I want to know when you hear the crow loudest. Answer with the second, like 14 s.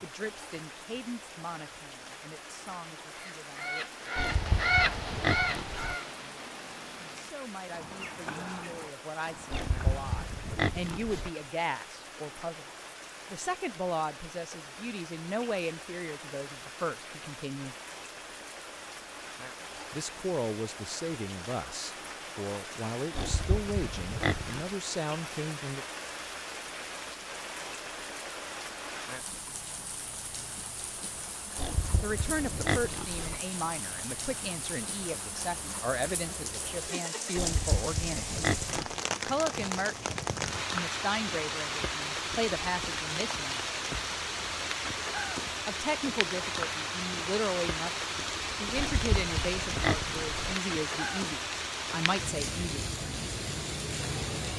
5 s.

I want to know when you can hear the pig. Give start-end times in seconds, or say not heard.
4.2-6.0, 9.5-11.3, 23.1-24.6, 31.6-33.4, 37.4-39.0, 48.8-50.5.